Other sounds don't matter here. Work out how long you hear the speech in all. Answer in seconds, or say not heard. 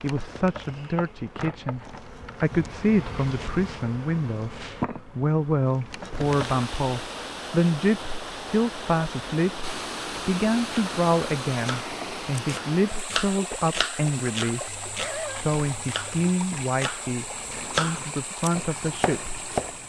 19 s.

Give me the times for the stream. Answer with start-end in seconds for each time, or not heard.
6.2-19.8.